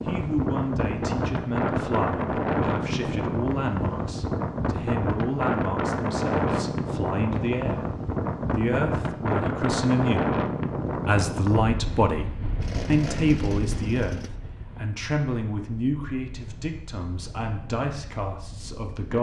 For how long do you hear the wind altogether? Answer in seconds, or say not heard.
19 s.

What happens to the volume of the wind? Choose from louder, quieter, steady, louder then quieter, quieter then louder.
quieter.